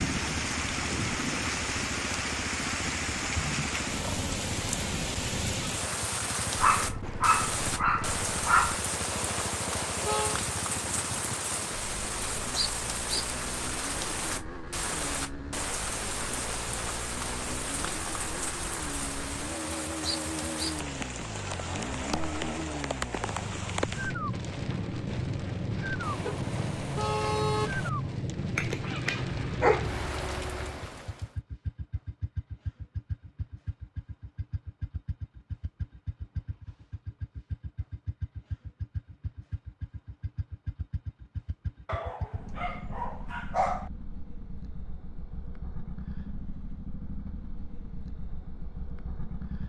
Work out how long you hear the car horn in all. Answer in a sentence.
You can hear the car horn for 3 seconds altogether.